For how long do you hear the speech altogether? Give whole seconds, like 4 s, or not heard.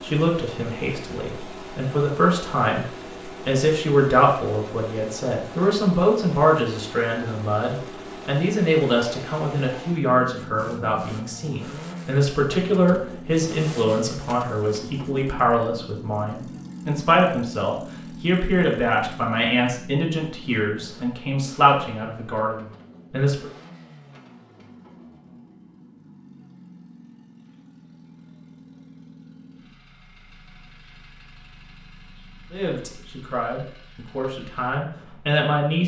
27 s.